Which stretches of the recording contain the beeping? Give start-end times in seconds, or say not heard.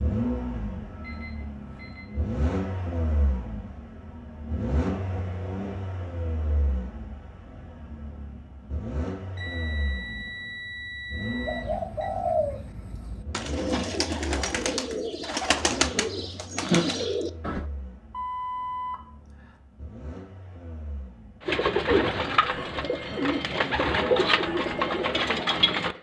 1.0-2.1, 9.3-12.1, 18.1-19.6.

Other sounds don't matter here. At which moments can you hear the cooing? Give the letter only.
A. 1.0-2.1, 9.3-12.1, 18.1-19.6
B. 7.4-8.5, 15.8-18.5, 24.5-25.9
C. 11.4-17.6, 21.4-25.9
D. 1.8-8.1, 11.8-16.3
C.